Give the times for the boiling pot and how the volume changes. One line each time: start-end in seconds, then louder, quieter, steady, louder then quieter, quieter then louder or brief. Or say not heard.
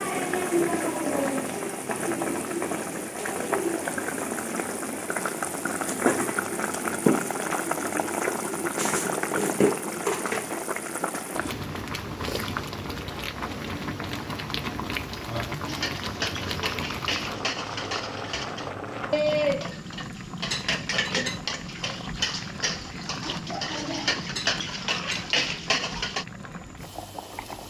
0.0-27.6 quieter.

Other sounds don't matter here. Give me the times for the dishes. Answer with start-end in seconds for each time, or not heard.
15.6-26.2.